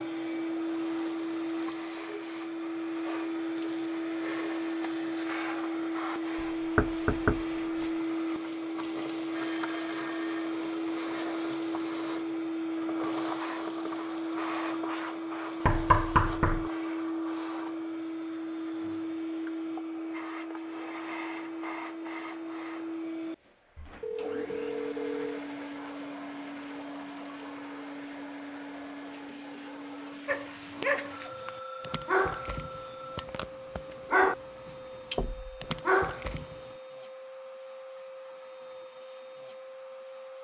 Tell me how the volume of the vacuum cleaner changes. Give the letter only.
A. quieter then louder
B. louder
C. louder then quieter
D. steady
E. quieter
E.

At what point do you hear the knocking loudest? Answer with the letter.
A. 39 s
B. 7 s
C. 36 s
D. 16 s
D.